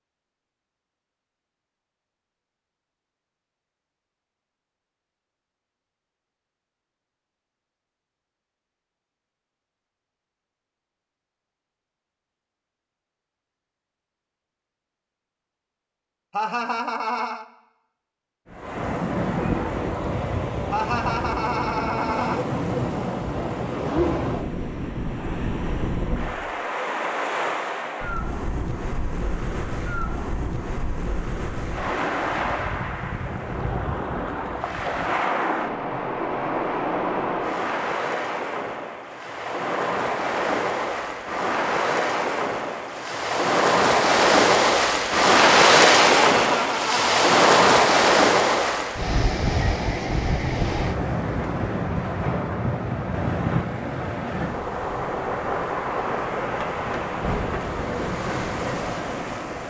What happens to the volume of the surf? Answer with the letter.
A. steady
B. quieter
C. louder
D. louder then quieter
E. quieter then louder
D.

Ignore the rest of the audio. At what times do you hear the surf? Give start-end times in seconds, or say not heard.
18.4-59.6.